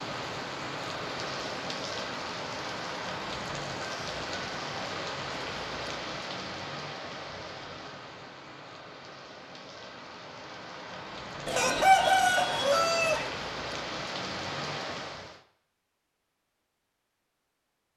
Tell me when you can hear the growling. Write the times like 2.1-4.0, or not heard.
not heard.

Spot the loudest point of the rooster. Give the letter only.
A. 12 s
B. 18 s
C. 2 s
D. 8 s
A.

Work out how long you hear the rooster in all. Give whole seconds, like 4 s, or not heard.
2 s.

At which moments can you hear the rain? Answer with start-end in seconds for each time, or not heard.
0.0-15.4.